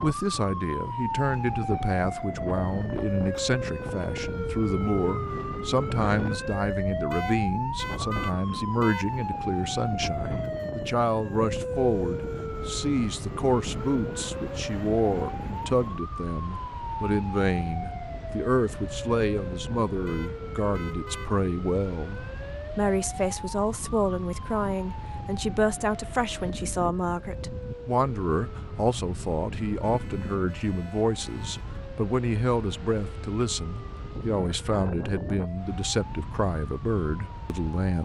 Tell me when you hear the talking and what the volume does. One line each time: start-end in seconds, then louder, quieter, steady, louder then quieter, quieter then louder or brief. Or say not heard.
0.0-38.0 steady.